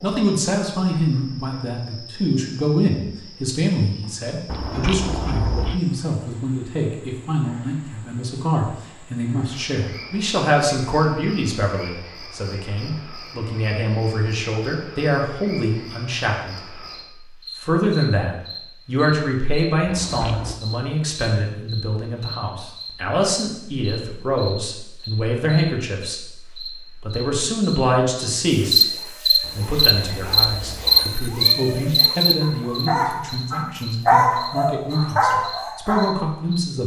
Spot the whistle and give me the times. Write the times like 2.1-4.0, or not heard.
not heard.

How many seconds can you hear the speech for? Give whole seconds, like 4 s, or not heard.
36 s.